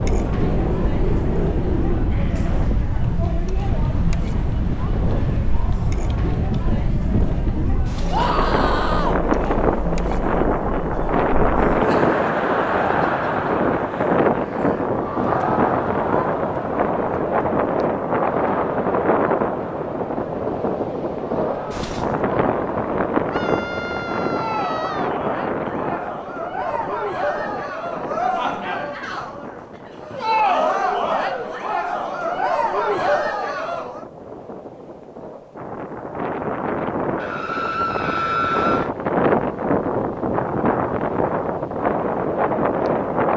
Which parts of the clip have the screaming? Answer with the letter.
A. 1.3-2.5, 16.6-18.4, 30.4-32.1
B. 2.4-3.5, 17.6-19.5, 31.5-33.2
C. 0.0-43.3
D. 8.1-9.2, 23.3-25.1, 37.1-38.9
D.